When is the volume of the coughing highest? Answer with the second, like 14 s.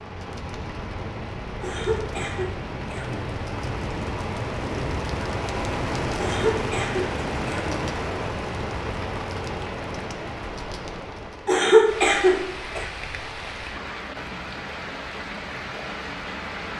12 s.